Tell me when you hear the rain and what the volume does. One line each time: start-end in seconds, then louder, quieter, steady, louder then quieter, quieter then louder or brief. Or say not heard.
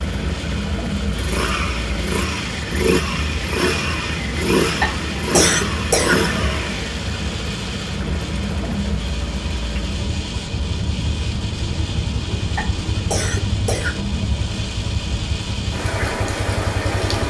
0.0-17.2 steady.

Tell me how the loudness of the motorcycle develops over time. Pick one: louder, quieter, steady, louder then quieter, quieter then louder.
quieter.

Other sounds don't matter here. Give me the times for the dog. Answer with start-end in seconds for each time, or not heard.
not heard.